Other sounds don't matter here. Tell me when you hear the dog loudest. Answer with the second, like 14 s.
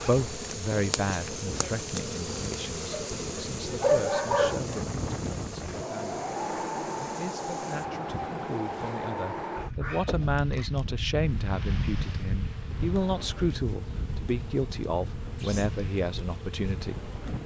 4 s.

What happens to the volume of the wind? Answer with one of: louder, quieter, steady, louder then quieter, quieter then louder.
louder then quieter.